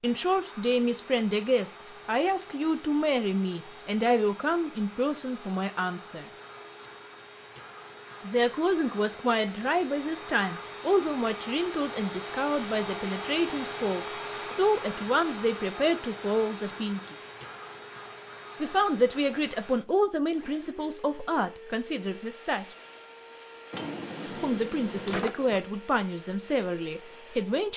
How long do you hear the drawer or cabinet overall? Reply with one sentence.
You can hear the drawer or cabinet for 2 seconds altogether.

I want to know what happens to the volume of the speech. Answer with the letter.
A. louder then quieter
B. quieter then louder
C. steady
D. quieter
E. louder
C.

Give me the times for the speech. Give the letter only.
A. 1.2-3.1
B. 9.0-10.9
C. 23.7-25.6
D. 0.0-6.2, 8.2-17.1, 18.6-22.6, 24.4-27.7
D.